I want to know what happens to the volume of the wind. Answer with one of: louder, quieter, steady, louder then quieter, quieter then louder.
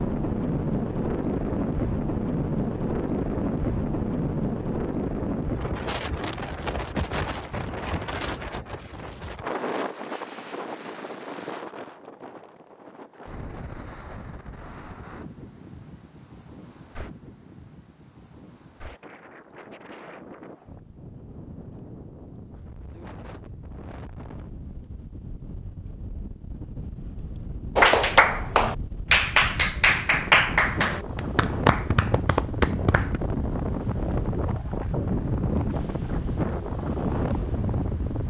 quieter then louder.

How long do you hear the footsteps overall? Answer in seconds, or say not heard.
not heard.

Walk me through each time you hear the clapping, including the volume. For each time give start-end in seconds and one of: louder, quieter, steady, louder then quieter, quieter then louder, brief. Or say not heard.
27.8-33.2 quieter.